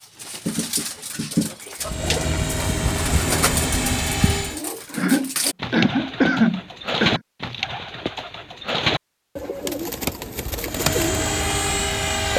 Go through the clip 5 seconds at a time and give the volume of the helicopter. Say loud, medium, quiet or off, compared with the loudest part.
loud, off, loud.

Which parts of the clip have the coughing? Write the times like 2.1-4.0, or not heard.
4.9-7.2.